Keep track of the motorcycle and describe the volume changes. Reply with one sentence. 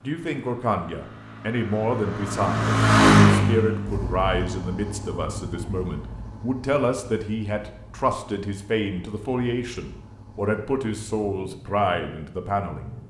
The loudness of the motorcycle goes up, then down.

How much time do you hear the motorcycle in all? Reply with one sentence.
You can hear the motorcycle for 13 seconds altogether.